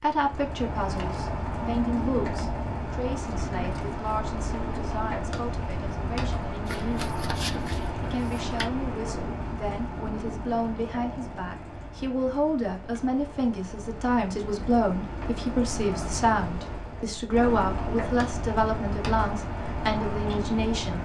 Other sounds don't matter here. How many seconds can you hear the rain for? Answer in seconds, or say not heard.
21 s.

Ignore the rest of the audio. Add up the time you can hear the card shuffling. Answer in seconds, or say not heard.
2 s.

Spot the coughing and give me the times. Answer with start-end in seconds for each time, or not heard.
not heard.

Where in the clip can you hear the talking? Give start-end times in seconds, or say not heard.
0.0-7.2, 8.0-20.9.